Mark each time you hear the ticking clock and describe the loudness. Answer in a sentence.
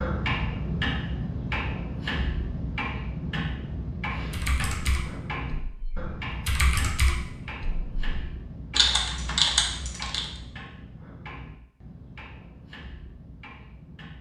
The ticking clock can be heard from 0.0 to 14.1 s, getting quieter.